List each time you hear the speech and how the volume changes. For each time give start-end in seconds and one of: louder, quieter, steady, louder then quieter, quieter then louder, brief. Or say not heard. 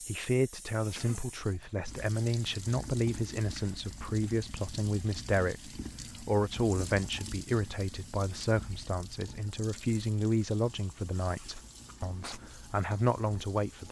0.0-13.8 steady.